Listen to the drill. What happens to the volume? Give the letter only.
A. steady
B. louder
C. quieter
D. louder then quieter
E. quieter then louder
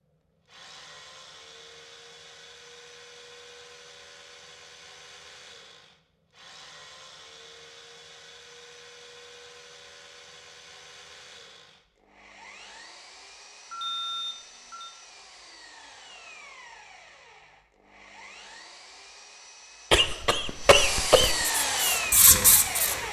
B.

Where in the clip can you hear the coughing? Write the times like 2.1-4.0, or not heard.
19.9-21.4.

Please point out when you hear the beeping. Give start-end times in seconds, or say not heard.
13.7-14.9.